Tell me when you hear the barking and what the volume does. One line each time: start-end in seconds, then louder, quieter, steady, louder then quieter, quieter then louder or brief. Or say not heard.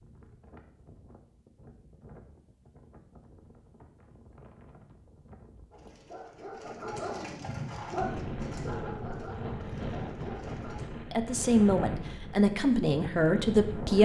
5.7-10.8 louder then quieter.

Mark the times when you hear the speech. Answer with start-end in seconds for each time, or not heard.
11.1-13.9.